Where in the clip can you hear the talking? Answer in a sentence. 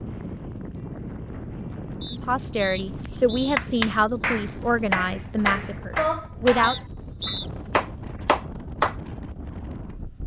The talking can be heard from 2.1 to 6.8 s.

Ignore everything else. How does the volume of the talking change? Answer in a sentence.
The volume of the talking goes down.